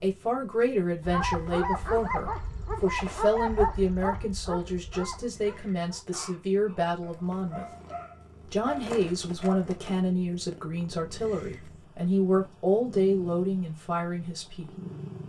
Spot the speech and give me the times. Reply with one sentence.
The speech can be heard from 0.0 to 7.7 s and from 8.5 to 14.7 s.